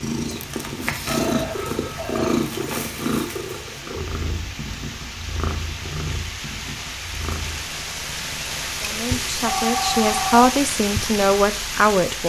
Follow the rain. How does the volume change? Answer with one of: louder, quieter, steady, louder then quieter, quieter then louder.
louder.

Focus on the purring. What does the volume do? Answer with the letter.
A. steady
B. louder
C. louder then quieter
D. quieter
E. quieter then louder
D.